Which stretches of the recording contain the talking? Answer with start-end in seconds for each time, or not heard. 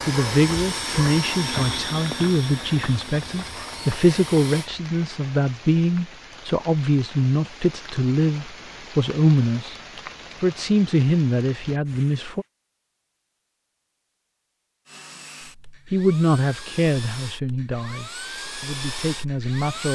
0.1-9.8, 10.4-12.4, 15.9-19.8.